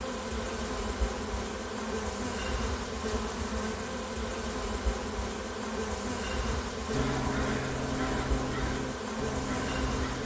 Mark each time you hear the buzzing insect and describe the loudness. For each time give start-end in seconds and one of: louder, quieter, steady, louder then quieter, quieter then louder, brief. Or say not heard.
0.0-10.2 steady.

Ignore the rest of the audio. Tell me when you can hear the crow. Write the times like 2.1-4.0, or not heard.
6.5-10.2.